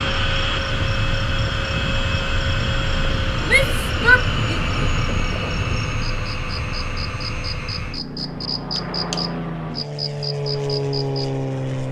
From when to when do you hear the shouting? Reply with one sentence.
The shouting can be heard from 3.5 to 4.7 s.